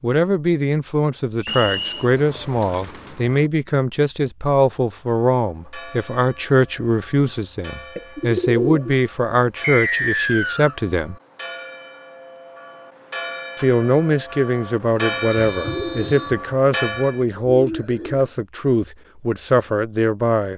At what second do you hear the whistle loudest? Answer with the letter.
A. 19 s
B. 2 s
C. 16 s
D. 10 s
D.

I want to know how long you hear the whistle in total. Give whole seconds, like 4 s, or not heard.
3 s.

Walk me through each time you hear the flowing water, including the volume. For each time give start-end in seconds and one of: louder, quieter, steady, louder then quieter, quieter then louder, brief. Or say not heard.
not heard.